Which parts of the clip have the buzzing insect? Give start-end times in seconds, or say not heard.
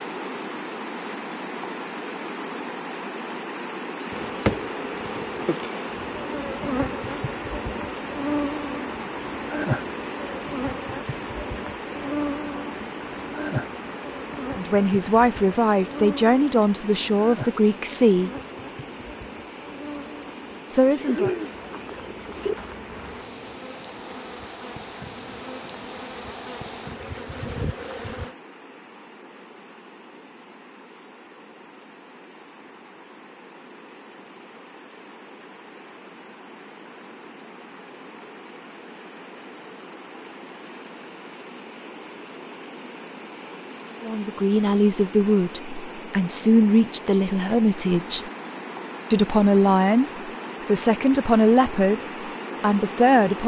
4.1-28.4.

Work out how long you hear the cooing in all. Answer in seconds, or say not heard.
2 s.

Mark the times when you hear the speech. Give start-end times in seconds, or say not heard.
14.6-18.3, 20.7-21.4, 44.0-48.2, 49.1-53.4.